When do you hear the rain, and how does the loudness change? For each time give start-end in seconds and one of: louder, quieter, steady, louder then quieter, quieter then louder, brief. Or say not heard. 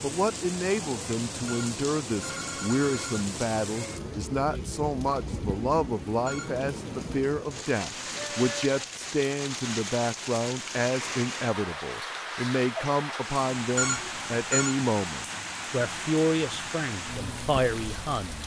0.0-18.4 steady.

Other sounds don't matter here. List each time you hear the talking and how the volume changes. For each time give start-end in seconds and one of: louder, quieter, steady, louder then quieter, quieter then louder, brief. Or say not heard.
0.0-18.4 steady.